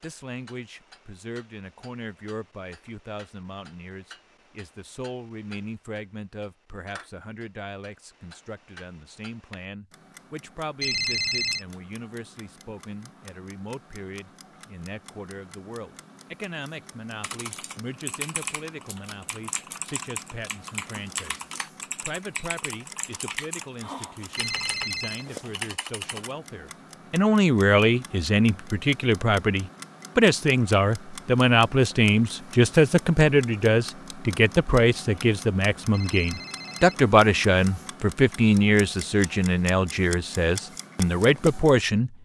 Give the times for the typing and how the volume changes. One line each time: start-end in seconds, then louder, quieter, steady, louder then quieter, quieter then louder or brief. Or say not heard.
17.2-26.4 steady.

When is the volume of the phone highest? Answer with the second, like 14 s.
11 s.